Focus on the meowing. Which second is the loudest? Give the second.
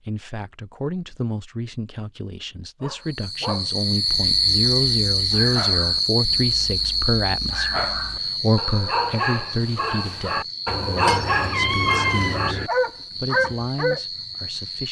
12 s.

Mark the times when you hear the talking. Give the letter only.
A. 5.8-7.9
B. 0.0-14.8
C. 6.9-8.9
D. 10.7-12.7
B.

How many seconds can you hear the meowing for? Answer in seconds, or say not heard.
2 s.